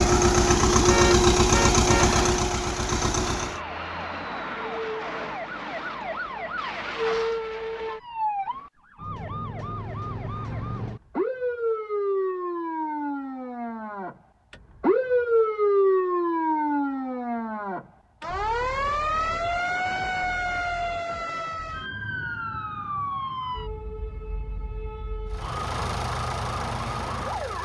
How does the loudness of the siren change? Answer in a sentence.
The volume of the siren goes up, then down.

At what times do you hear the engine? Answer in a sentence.
The engine can be heard from 0.0 to 3.6 s and from 25.3 to 27.6 s.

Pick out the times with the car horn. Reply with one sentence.
You can hear the car horn from 0.8 to 2.1 s.